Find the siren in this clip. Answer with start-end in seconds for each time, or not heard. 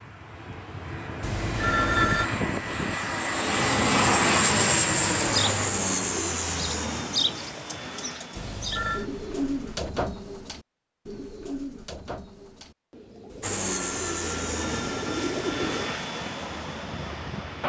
not heard.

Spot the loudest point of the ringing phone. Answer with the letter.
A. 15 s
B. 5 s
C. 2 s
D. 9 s
C.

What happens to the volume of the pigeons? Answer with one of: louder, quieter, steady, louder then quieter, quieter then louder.
quieter then louder.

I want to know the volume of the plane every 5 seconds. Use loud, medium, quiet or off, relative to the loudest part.
loud, medium, medium, medium.